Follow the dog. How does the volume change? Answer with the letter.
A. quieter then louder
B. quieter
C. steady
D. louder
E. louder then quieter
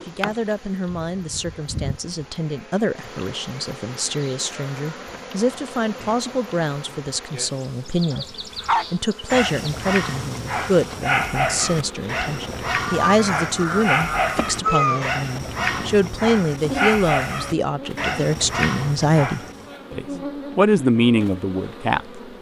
C.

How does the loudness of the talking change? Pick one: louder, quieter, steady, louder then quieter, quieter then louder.
louder.